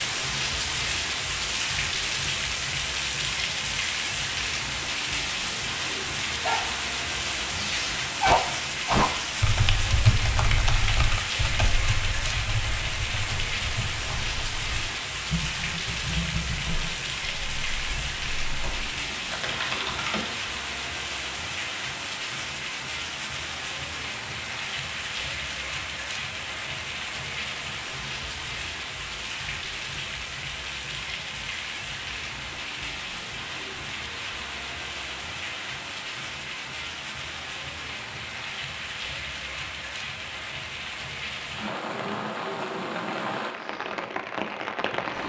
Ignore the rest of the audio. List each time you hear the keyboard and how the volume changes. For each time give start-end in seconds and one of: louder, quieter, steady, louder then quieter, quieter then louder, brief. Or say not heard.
9.4-20.3 quieter.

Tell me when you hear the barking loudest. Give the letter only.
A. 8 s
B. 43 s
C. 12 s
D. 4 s
A.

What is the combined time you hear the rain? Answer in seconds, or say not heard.
45 s.